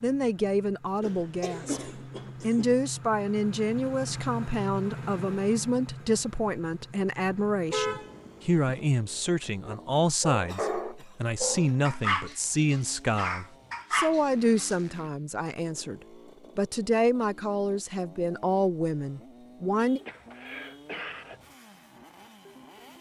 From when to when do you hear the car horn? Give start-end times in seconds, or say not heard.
7.7-8.8, 19.8-20.9.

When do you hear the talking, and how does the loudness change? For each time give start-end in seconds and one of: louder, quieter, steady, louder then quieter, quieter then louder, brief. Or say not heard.
0.0-20.0 steady.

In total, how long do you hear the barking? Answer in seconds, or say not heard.
5 s.